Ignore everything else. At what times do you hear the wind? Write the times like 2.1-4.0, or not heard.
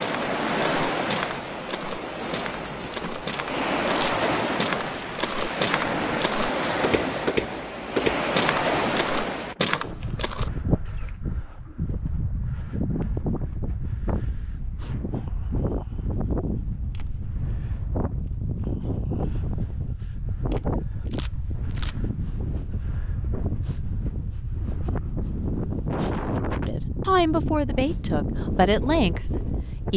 0.0-29.9.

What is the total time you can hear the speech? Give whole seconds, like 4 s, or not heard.
3 s.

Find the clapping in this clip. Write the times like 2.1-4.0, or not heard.
not heard.